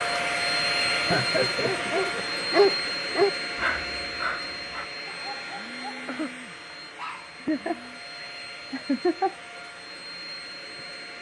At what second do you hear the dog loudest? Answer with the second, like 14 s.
3 s.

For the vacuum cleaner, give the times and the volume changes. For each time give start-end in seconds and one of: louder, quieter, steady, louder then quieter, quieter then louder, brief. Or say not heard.
0.0-11.1 quieter.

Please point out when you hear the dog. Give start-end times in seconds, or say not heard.
1.2-7.3.